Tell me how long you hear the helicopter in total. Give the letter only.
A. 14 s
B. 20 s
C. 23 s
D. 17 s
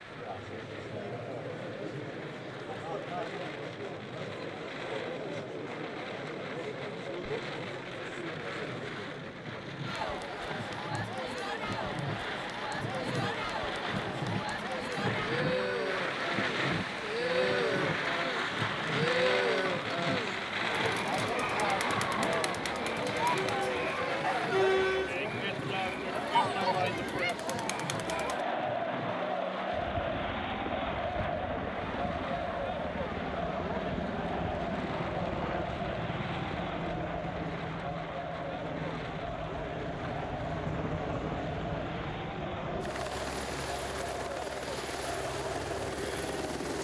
D.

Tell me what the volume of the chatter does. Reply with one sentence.
The loudness of the chatter goes up, then down.